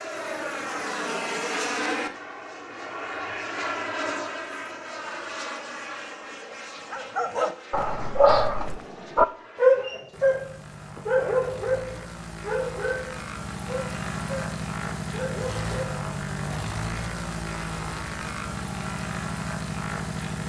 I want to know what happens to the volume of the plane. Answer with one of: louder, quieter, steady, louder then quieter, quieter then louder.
quieter then louder.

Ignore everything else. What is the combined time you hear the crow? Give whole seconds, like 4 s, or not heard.
not heard.